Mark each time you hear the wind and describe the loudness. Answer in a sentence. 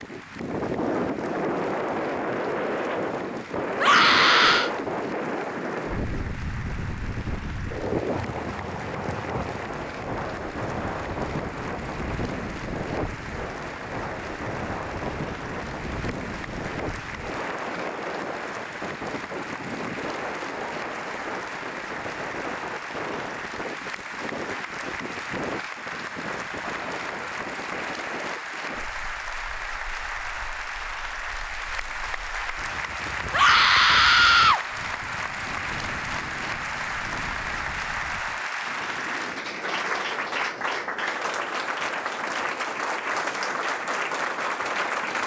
You can hear the wind from 0.0 to 45.2 s, getting quieter.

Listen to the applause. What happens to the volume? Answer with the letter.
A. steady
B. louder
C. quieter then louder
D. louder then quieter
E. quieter
B.